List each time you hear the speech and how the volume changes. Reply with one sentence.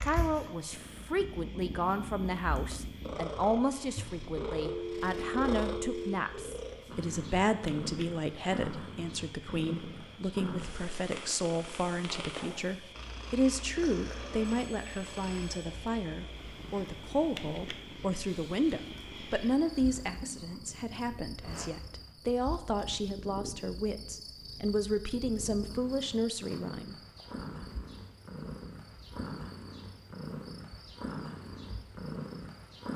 You can hear the speech from 0.0 to 26.9 s, at a steady volume.